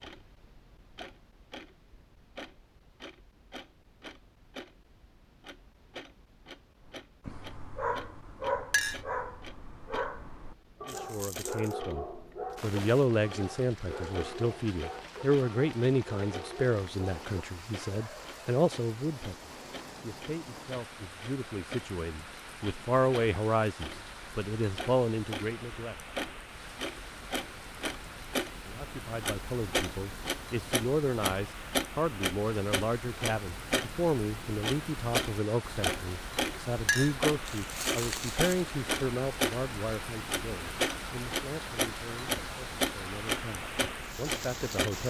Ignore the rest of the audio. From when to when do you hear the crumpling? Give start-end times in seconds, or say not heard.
10.8-11.8, 37.5-38.8.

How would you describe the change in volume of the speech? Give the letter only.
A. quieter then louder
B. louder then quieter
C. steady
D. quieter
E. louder
D.